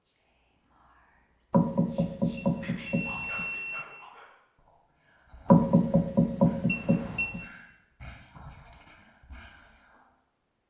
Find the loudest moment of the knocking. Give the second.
6 s.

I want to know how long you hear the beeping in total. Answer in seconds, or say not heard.
2 s.